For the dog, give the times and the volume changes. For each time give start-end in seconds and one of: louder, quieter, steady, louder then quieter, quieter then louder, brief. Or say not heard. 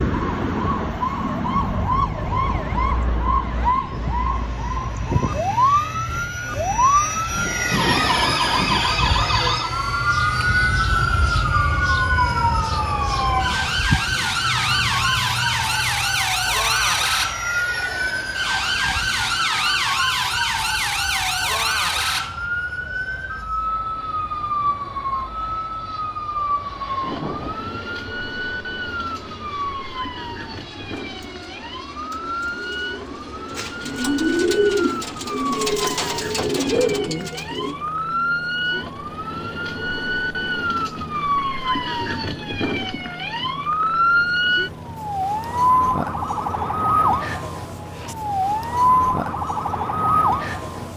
not heard.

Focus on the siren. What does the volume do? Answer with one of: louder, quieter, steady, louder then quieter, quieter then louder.
quieter then louder.